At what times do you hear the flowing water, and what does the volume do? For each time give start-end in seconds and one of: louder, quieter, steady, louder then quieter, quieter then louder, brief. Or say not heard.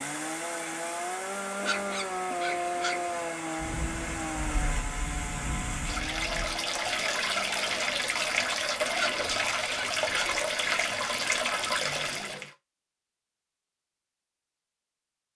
0.0-12.5 louder.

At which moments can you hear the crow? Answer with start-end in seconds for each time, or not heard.
not heard.